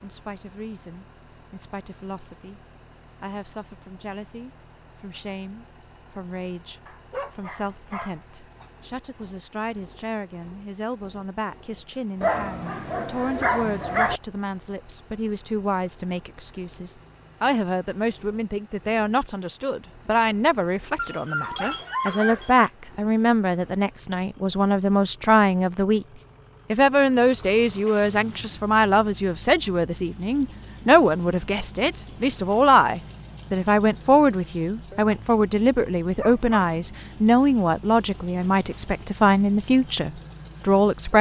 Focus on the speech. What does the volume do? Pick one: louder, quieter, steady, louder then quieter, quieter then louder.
louder.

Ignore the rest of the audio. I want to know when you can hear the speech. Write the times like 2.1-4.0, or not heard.
0.0-26.1, 26.7-41.1.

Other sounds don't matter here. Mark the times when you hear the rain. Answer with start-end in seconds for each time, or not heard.
not heard.